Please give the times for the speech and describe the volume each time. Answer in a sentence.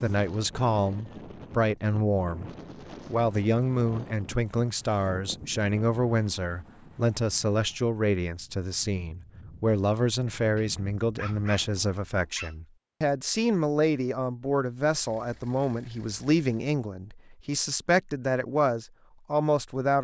The speech can be heard from 0.0 to 19.9 s, at a steady volume.